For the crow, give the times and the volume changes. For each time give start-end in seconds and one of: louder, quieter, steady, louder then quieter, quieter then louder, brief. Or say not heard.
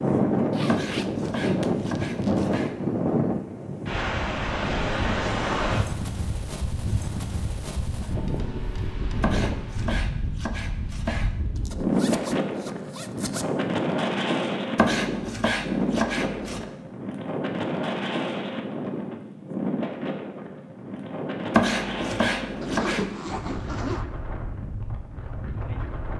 not heard.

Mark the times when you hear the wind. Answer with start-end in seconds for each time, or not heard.
0.0-26.1.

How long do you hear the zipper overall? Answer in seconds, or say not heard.
5 s.